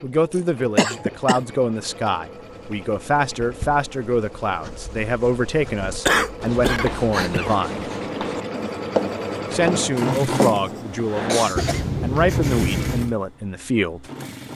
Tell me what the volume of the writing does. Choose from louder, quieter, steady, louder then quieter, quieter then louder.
louder.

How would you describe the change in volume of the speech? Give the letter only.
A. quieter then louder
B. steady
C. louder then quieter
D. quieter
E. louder
B.